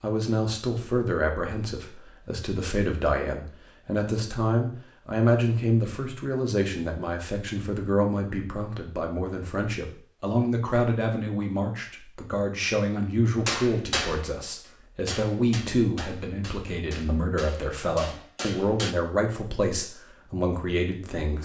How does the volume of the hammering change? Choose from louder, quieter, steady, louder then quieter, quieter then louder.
quieter then louder.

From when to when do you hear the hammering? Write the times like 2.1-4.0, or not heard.
13.4-18.9.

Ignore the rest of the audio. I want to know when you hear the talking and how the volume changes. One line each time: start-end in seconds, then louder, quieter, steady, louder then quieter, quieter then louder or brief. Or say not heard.
0.0-21.4 steady.